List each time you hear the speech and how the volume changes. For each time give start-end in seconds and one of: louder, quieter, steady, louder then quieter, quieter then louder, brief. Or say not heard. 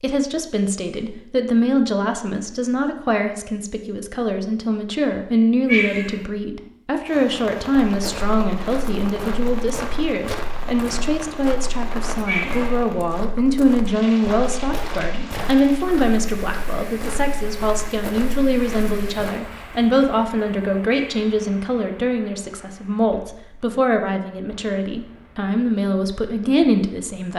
0.0-27.3 steady.